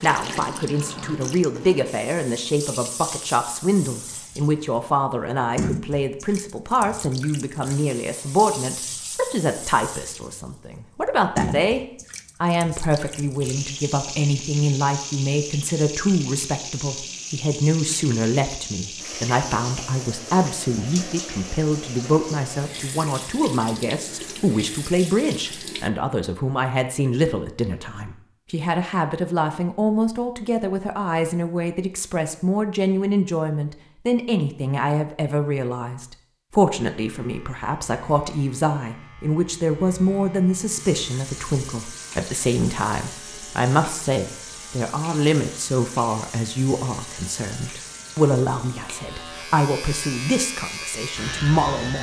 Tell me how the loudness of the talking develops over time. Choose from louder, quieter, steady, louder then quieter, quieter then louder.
steady.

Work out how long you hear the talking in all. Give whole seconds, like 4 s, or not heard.
52 s.